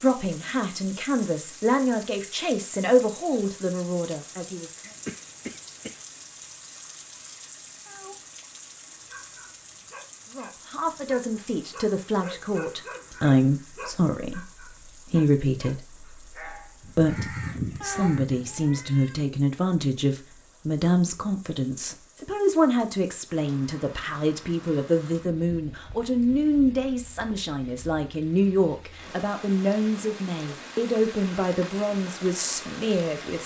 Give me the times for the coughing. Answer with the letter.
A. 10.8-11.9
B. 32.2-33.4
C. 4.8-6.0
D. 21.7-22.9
C.